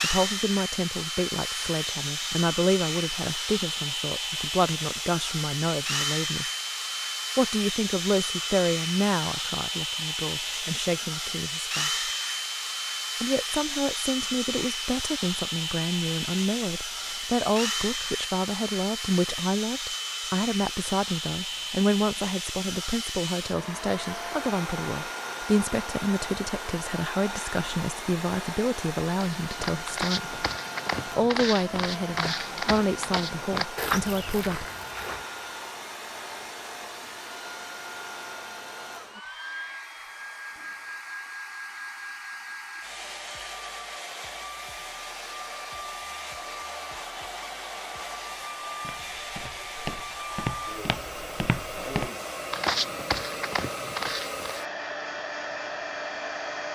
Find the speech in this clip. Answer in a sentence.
The speech can be heard from 0.0 to 6.5 s, from 7.3 to 12.1 s, from 13.2 to 30.4 s and from 31.1 to 34.6 s.